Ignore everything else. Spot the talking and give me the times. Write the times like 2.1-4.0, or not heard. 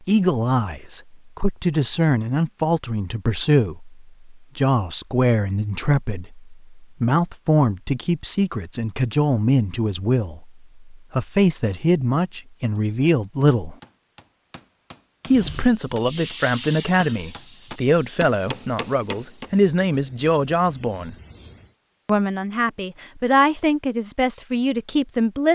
0.1-13.8, 15.2-21.1, 22.1-25.4.